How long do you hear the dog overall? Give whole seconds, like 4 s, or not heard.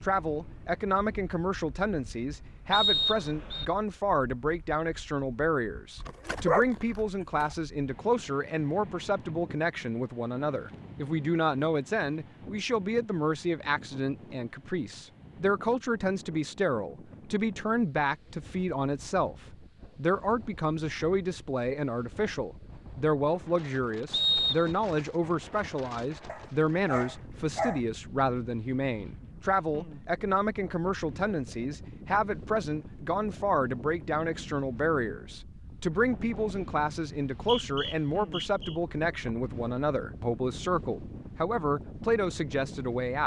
3 s.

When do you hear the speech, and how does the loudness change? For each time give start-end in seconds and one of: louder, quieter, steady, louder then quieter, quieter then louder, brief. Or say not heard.
0.0-43.2 steady.